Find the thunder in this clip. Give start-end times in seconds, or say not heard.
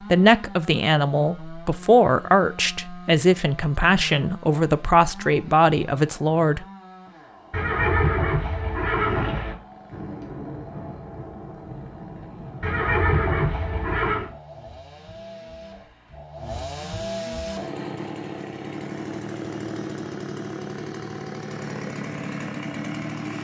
9.9-14.0.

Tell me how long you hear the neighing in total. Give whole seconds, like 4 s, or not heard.
4 s.